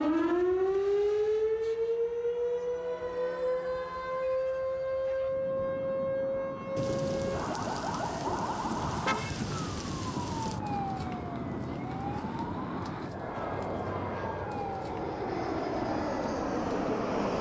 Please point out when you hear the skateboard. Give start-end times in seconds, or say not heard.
not heard.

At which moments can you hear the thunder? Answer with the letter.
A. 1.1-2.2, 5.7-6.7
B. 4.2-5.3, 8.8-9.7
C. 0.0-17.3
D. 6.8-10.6
D.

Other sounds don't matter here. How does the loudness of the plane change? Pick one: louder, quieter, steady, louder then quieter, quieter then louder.
louder.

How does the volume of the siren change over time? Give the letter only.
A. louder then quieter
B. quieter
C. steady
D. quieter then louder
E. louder
B.